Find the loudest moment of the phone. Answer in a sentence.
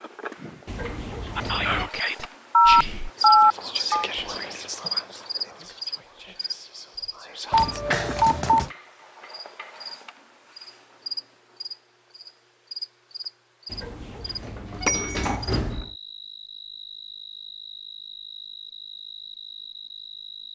The loudest moment of the phone is at 3 seconds.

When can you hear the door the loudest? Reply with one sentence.
The volume of the door peaks at 15 seconds.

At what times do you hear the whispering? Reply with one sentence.
You can hear the whispering from 1.4 to 7.8 s.